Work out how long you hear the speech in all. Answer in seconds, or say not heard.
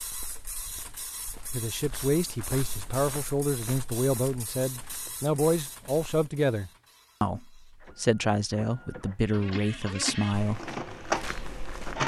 9 s.